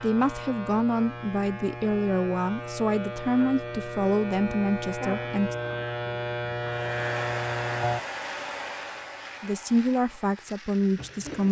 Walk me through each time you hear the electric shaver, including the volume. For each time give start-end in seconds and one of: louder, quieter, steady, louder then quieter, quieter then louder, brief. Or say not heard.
0.0-11.4 louder then quieter.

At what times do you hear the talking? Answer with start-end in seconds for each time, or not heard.
0.0-5.5, 9.4-11.4.